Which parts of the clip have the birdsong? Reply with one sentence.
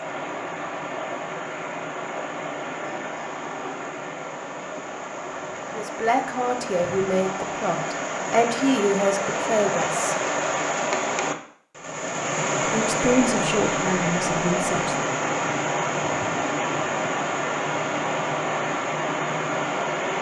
The birdsong can't be heard in this clip.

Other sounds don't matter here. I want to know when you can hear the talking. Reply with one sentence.
The talking can be heard from 5.8 to 10.2 s and from 12.7 to 15.0 s.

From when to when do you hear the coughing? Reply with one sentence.
The coughing can't be heard in this clip.